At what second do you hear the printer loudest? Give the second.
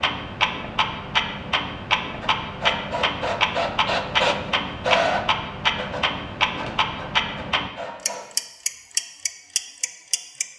5 s.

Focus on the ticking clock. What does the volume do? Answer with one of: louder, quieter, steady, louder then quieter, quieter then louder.
steady.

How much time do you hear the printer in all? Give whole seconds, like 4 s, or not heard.
6 s.